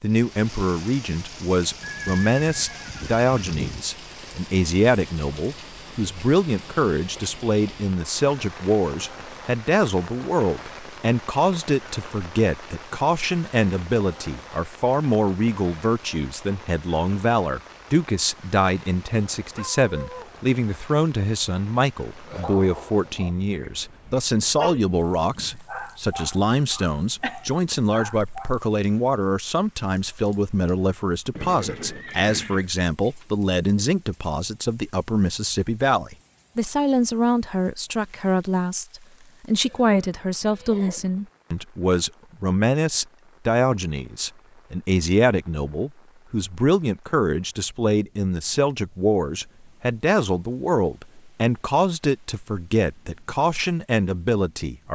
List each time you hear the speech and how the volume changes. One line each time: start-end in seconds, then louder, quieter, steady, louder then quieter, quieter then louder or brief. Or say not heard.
0.0-54.8 steady.